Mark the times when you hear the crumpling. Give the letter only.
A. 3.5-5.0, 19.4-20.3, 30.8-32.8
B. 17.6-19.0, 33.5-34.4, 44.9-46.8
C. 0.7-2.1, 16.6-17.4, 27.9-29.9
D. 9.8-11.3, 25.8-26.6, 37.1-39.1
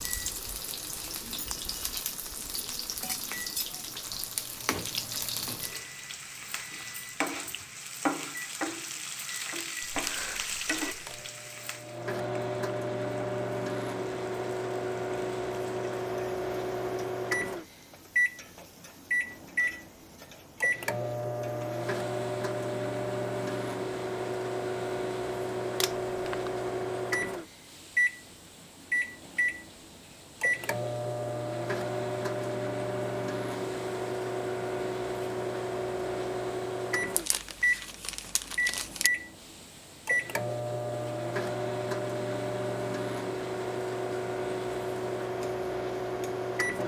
D.